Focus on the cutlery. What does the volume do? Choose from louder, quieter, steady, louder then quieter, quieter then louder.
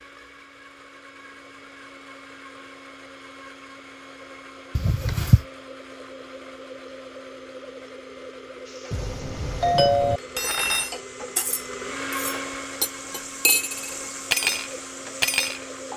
quieter then louder.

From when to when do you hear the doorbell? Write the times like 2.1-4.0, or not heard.
4.8-5.4, 8.9-10.2.